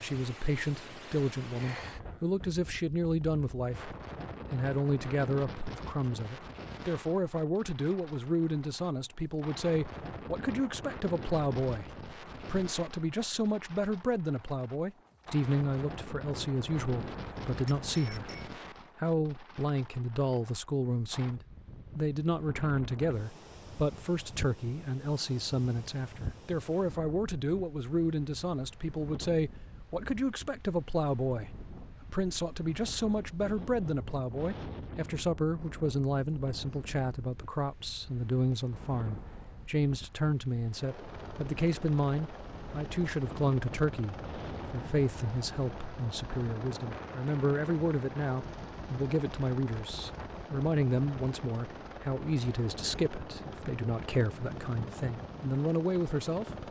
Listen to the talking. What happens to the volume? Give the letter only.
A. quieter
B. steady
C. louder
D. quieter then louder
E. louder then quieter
B.